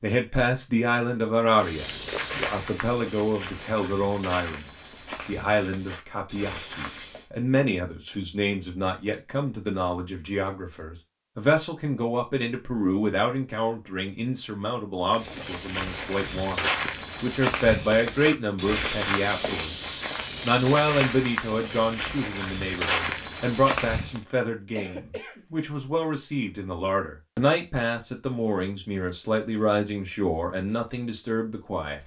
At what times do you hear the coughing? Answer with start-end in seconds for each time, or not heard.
24.8-25.4.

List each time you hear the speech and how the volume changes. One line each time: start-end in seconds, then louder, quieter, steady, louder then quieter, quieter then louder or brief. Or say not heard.
0.0-32.0 steady.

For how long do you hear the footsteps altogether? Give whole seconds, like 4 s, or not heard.
15 s.